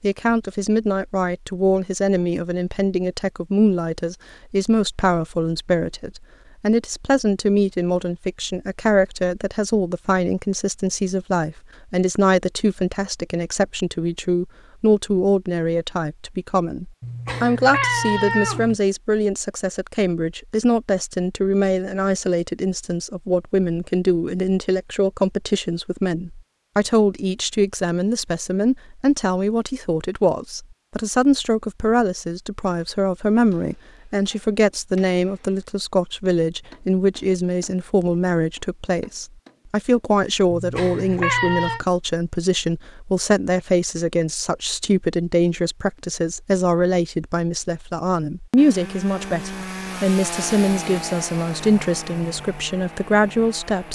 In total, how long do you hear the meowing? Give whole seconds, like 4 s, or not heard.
3 s.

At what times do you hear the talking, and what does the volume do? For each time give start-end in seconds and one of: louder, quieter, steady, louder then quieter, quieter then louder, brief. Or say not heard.
0.0-53.9 steady.